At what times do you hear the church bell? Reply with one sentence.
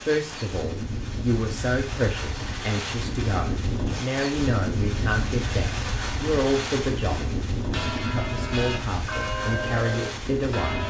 The church bell can be heard from 7.6 to 10.8 s.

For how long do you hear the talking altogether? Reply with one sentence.
You can hear the talking for 10 seconds altogether.